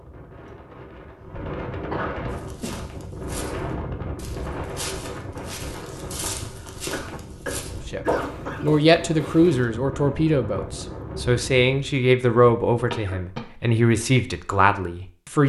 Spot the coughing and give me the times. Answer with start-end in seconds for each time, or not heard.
1.1-2.9, 6.7-8.8, 12.9-13.4.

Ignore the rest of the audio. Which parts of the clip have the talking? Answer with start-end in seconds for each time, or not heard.
7.8-15.4.